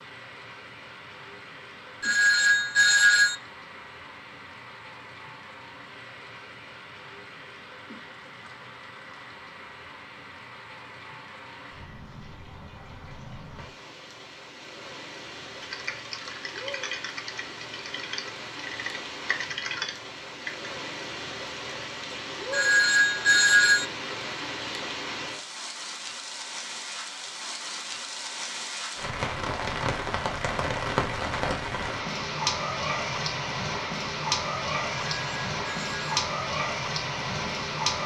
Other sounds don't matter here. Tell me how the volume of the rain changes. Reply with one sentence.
The volume of the rain goes up.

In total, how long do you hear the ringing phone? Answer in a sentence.
The ringing phone can be heard for 4 seconds in total.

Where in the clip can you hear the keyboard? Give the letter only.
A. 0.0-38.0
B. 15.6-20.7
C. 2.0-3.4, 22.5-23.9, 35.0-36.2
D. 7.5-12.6
B.